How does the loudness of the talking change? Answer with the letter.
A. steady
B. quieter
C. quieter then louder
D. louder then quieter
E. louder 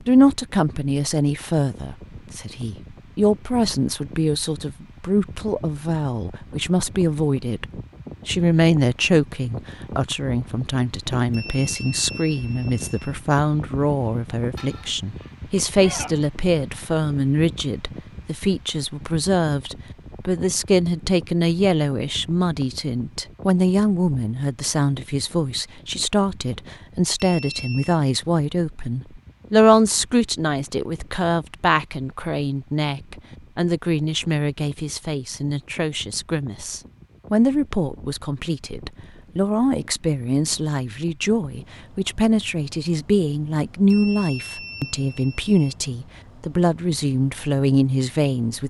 A.